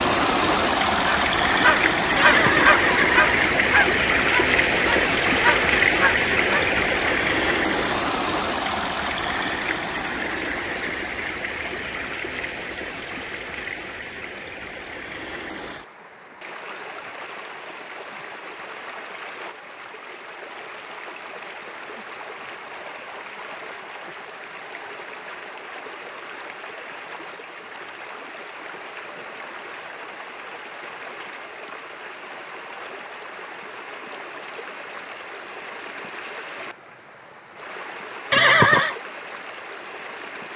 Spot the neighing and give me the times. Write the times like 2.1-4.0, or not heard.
2.1-3.8, 38.3-39.0.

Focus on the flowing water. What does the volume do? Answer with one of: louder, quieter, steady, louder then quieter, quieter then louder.
quieter.